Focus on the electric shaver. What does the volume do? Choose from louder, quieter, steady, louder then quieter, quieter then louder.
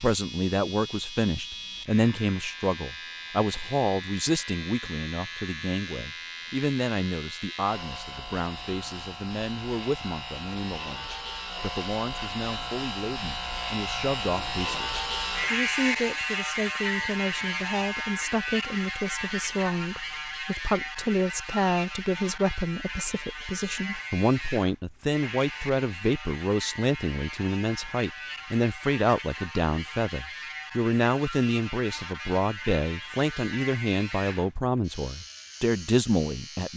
louder then quieter.